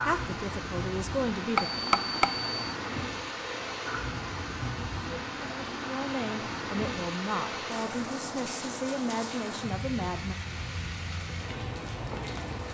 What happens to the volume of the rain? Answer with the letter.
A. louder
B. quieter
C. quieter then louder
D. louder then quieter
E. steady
E.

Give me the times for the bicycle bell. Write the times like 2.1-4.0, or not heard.
1.6-2.6.